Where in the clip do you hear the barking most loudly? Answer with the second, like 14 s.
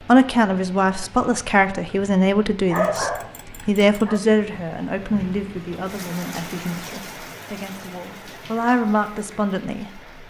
3 s.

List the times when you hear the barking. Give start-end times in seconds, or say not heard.
2.7-4.2.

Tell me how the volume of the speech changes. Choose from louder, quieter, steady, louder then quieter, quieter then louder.
quieter then louder.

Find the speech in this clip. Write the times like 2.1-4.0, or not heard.
0.1-10.0.